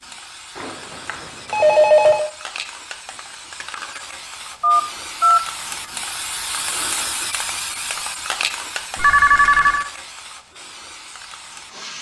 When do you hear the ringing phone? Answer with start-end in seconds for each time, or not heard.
0.6-2.3, 4.6-5.4, 8.9-9.8.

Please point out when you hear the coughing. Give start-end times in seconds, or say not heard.
not heard.